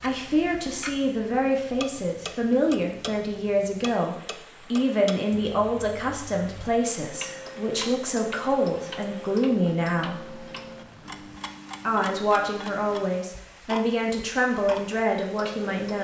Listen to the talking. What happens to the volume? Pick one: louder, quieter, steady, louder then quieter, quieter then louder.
steady.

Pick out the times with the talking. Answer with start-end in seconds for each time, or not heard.
0.0-10.4, 11.8-15.9.